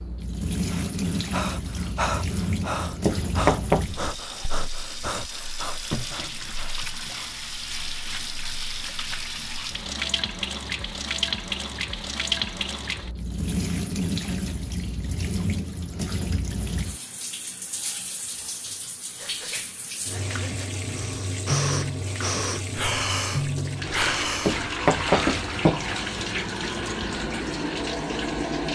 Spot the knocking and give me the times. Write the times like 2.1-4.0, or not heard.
3.0-3.9, 24.4-25.9.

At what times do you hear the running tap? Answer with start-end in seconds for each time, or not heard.
0.0-28.7.